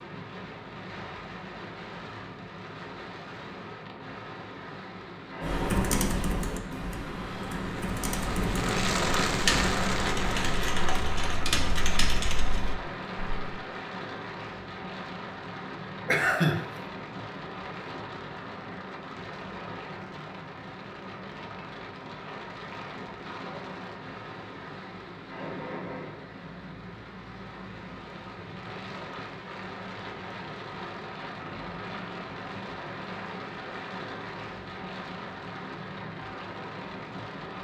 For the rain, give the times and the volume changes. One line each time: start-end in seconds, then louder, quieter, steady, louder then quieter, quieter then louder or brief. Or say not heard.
0.0-37.5 louder then quieter.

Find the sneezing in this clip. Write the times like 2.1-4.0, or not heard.
16.1-16.6.